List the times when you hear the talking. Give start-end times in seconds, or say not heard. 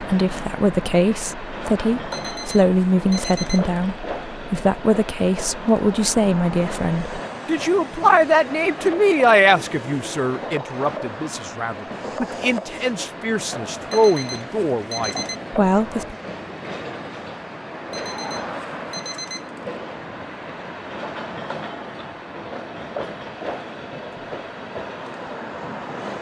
0.0-16.1.